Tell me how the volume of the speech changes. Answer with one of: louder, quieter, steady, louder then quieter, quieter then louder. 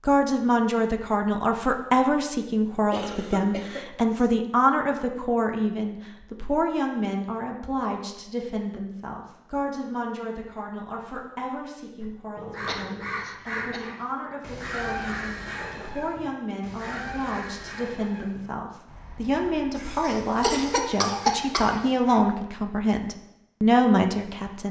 quieter then louder.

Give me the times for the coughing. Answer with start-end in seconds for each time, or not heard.
2.9-4.3, 12.7-13.8, 20.1-21.9.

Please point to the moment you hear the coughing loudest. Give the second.
21 s.